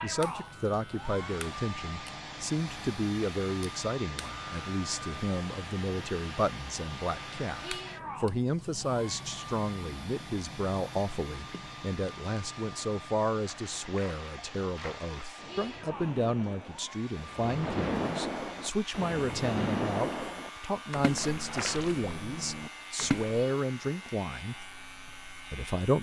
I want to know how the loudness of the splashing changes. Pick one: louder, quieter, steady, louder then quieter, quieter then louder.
louder then quieter.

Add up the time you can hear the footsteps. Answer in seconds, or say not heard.
not heard.